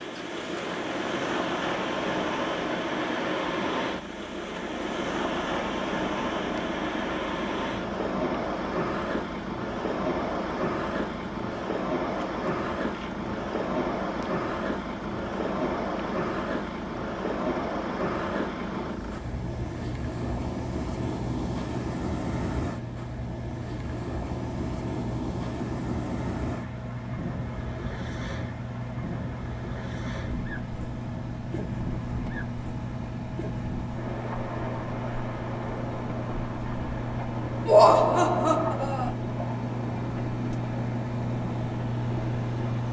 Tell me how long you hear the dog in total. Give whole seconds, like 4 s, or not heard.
not heard.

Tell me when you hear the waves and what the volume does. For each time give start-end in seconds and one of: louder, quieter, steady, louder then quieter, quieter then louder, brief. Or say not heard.
0.0-42.8 quieter.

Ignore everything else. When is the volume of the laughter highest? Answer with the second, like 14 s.
38 s.